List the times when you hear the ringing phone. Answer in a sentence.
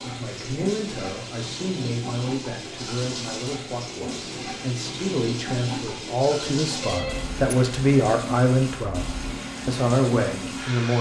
You can hear the ringing phone from 6.8 to 7.5 s.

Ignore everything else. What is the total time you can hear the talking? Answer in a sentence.
The talking can be heard for 11 seconds in total.